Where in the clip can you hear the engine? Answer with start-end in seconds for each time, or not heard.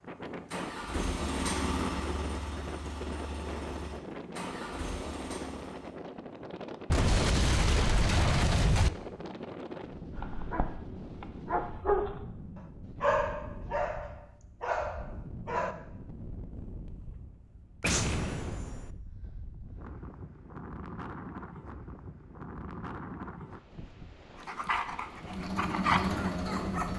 0.0-6.0, 25.1-26.9.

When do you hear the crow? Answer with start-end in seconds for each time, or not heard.
not heard.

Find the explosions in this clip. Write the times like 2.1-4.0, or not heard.
6.9-8.9, 17.8-18.9.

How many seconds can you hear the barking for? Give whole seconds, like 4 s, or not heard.
8 s.